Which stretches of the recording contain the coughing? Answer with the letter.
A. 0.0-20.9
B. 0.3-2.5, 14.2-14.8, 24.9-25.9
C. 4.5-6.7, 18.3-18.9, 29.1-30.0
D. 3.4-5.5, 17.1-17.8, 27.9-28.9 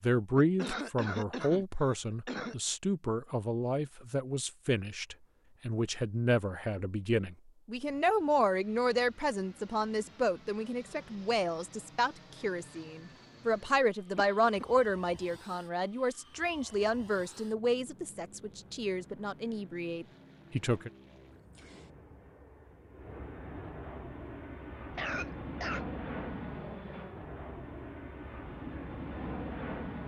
B.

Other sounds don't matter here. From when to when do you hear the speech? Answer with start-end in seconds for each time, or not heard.
0.0-20.9.